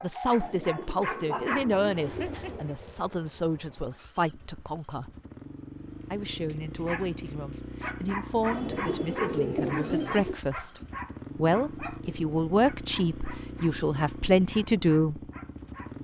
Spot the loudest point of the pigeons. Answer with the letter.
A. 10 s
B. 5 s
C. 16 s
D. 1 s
A.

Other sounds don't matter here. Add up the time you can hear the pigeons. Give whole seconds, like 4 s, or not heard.
4 s.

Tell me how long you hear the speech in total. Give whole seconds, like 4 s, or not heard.
14 s.